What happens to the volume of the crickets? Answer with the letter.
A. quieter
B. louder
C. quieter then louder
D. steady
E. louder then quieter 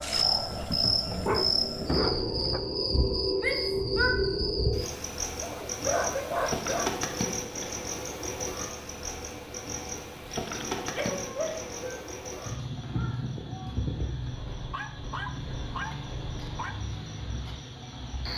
A.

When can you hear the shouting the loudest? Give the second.
4 s.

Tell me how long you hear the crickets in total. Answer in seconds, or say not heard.
18 s.